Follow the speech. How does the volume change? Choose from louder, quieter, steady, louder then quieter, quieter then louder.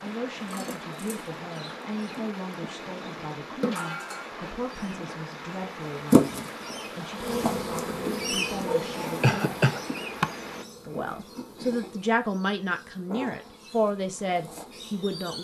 louder.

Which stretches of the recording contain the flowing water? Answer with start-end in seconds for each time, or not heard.
0.0-10.7.